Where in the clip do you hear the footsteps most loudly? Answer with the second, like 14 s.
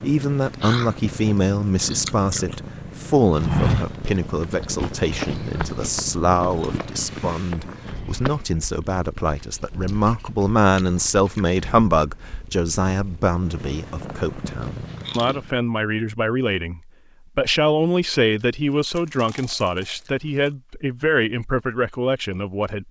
4 s.